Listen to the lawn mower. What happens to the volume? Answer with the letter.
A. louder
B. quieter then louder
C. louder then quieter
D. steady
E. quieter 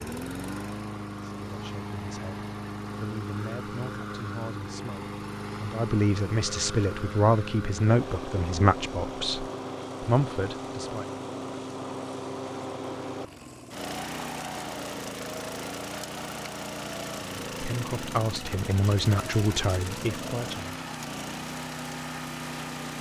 D.